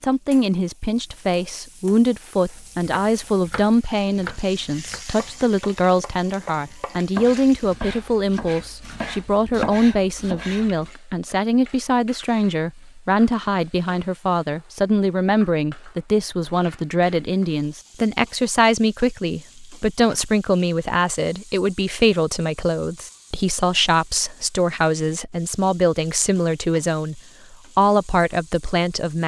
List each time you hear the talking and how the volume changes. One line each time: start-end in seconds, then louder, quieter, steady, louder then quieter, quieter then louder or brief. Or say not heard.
0.0-29.2 steady.